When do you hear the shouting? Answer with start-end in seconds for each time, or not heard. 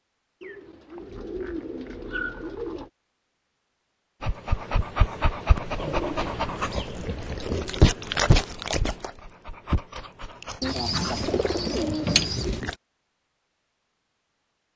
not heard.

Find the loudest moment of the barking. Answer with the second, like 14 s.
8 s.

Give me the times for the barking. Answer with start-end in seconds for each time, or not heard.
4.2-12.8.